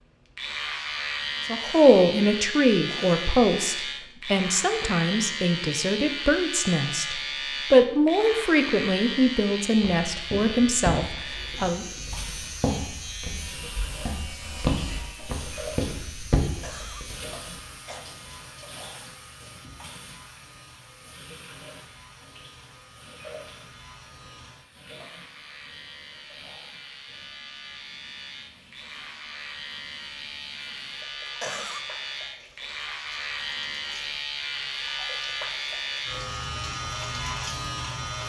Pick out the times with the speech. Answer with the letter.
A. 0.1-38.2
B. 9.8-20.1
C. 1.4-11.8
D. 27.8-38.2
C.